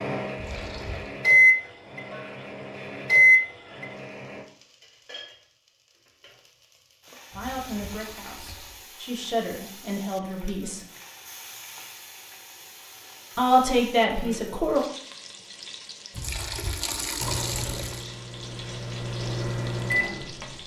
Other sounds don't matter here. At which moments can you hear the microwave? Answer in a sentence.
You can hear the microwave from 0.0 to 4.4 s and from 17.2 to 20.6 s.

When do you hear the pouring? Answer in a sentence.
You can hear the pouring from 0.3 to 1.1 s, from 7.3 to 8.8 s and from 16.1 to 18.1 s.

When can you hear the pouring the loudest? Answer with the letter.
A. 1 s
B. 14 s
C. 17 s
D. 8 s
C.